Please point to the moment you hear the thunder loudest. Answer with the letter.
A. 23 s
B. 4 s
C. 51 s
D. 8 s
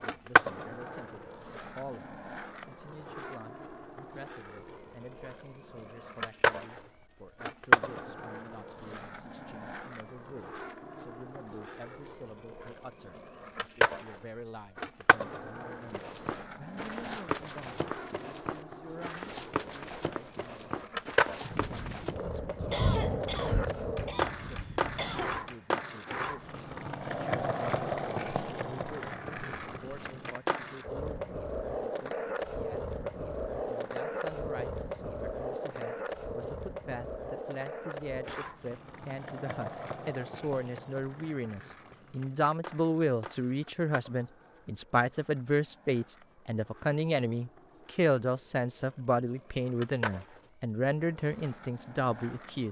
A.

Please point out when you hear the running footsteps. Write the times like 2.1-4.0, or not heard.
15.9-22.2.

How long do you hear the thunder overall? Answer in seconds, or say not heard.
4 s.